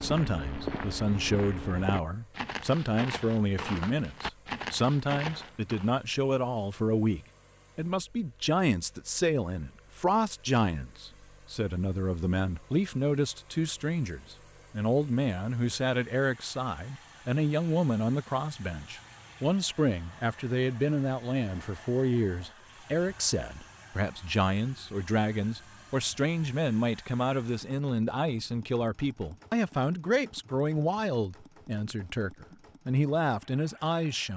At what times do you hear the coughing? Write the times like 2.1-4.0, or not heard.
not heard.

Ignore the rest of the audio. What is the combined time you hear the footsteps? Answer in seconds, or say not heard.
6 s.